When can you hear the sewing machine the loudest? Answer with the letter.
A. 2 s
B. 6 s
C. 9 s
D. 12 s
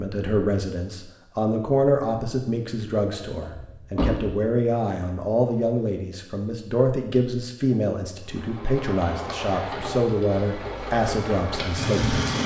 D.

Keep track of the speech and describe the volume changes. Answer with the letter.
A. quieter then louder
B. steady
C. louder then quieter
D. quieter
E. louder
B.